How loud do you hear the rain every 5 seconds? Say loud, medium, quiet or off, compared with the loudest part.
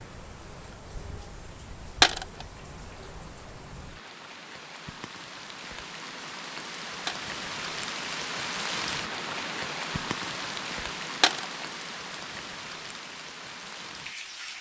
medium, loud, loud.